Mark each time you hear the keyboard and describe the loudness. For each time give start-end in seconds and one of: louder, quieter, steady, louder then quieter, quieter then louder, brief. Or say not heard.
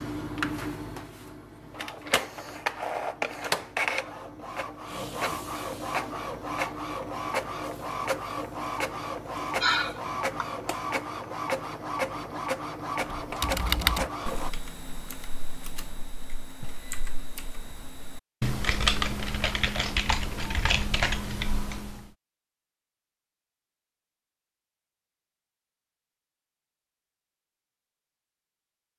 13.2-22.1 quieter then louder.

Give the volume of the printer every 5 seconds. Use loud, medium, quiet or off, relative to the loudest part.
loud, loud, loud, off, off, off.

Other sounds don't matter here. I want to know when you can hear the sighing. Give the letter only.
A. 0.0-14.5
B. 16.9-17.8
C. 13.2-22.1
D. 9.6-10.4
D.